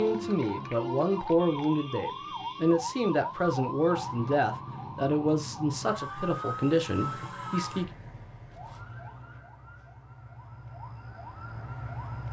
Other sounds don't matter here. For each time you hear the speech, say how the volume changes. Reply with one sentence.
The speech can be heard from 0.0 to 7.8 s, at a steady volume.